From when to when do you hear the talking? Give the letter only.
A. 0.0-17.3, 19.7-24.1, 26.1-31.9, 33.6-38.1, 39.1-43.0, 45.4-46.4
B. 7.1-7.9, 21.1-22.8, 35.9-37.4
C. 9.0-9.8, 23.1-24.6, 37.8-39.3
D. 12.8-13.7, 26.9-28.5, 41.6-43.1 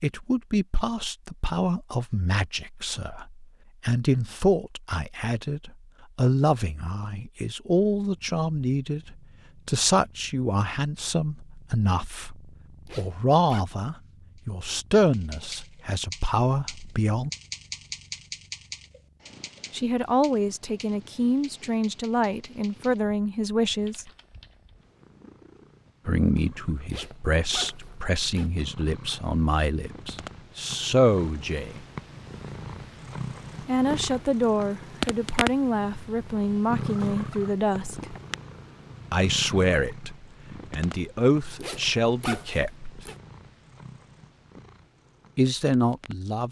A.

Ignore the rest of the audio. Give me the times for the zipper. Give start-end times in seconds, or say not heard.
12.8-13.7, 26.9-28.5, 41.6-43.1.